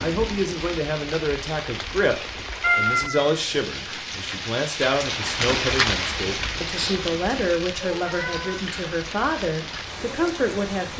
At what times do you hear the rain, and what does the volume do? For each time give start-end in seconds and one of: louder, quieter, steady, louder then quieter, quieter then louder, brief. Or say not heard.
0.0-10.9 louder then quieter.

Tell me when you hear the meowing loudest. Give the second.
3 s.